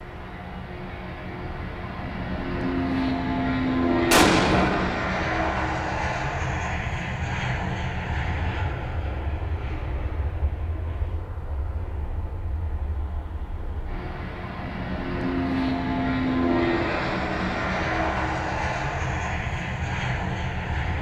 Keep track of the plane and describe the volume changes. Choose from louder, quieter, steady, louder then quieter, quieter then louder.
quieter then louder.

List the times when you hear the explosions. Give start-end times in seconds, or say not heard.
4.1-5.0.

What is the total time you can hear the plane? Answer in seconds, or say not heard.
21 s.